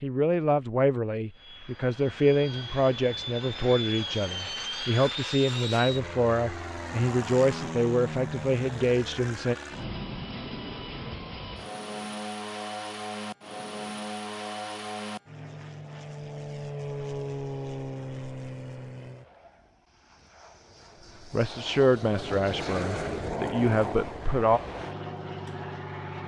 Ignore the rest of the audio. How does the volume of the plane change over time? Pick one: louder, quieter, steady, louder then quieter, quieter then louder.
steady.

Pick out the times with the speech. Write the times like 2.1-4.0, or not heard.
0.0-9.6, 21.3-24.6.